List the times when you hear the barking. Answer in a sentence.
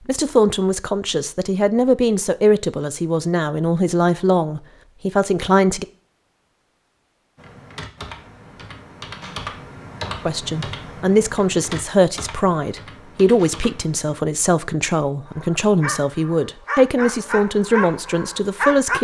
You can hear the barking from 15.2 to 19.0 s.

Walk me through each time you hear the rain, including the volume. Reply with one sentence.
The rain can't be heard in this clip.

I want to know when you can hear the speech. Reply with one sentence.
The speech can be heard from 0.1 to 5.8 s and from 10.2 to 19.0 s.